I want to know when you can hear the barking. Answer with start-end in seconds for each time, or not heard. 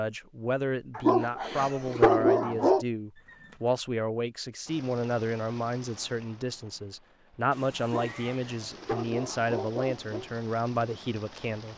0.9-2.9, 7.8-10.3.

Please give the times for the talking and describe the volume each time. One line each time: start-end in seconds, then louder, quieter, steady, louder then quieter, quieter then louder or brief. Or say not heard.
0.0-11.7 steady.